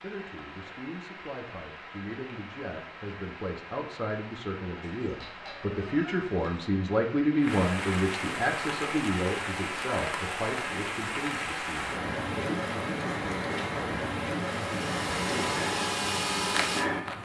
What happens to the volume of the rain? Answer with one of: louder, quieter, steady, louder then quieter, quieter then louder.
louder.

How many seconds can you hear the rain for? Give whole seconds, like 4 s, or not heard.
17 s.